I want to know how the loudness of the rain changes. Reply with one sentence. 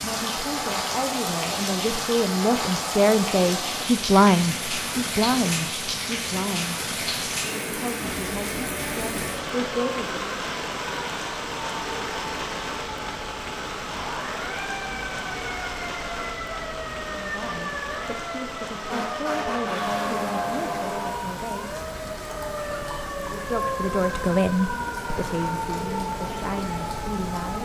The loudness of the rain goes down.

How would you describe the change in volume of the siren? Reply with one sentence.
The loudness of the siren goes up.